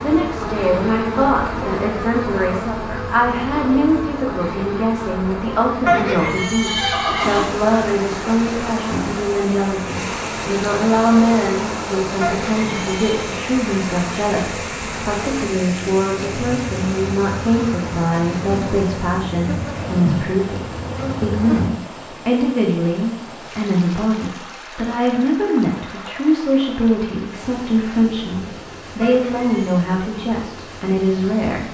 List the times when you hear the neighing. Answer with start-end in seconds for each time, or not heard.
5.8-7.5, 12.2-13.2, 29.0-29.8.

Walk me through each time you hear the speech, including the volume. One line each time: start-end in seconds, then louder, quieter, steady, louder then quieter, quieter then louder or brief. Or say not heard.
0.0-31.6 steady.